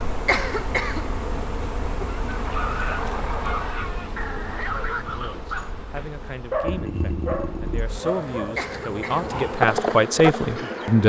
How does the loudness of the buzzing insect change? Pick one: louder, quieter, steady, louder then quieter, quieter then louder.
quieter then louder.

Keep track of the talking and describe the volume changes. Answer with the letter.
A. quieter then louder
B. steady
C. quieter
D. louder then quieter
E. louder
E.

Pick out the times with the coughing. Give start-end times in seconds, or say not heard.
0.2-1.1, 8.6-9.3.